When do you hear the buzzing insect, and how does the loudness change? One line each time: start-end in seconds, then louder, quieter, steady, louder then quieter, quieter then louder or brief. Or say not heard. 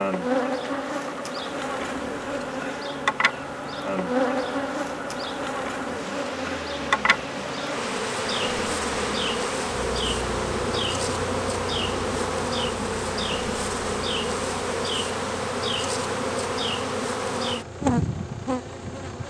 0.0-19.2 steady.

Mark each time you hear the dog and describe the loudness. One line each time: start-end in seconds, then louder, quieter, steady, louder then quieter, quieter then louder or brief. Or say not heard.
not heard.